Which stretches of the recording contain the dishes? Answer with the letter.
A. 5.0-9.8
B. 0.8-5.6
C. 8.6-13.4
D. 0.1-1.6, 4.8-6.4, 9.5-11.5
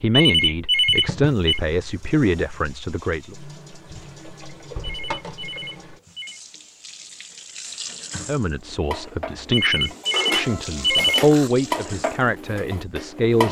C.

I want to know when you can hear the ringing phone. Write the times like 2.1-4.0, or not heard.
0.1-1.6, 4.8-6.4, 9.5-11.5.